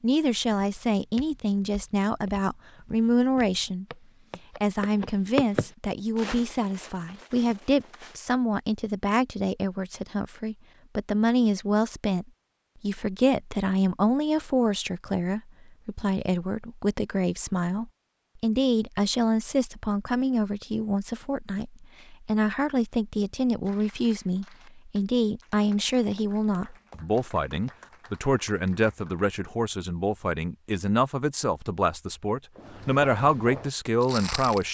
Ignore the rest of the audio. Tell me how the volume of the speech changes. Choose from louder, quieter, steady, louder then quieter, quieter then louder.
steady.